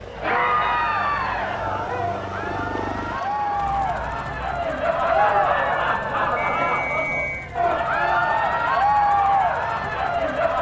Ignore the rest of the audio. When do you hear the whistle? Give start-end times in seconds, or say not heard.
6.3-7.5.